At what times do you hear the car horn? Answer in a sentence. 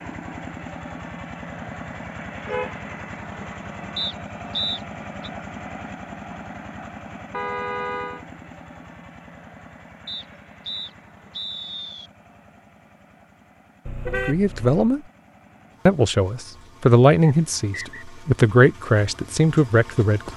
You can hear the car horn from 1.6 to 2.9 s, from 7.3 to 8.2 s and from 13.8 to 14.9 s.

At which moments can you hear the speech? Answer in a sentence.
The speech can be heard from 14.2 to 15.0 s and from 15.8 to 20.3 s.